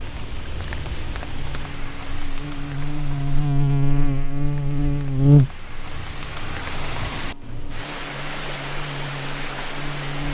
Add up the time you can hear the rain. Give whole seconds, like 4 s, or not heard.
10 s.